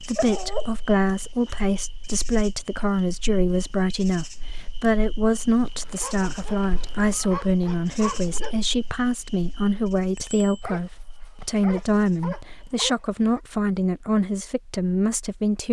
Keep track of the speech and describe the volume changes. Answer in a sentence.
The loudness of the speech stays about the same.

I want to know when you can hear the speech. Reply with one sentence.
You can hear the speech from 0.0 to 15.6 s.